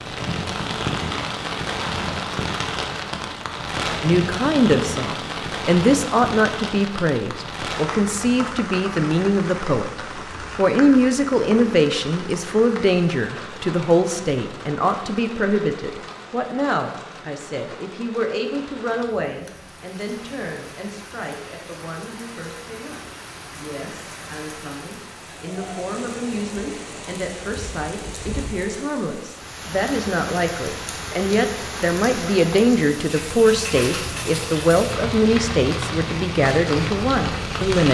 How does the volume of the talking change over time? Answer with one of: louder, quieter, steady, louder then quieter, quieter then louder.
quieter then louder.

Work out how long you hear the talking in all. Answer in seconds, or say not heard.
34 s.